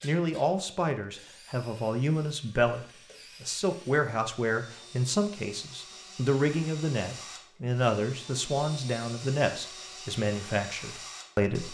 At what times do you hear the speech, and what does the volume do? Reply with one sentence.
The speech can be heard from 0.0 to 11.6 s, at a steady volume.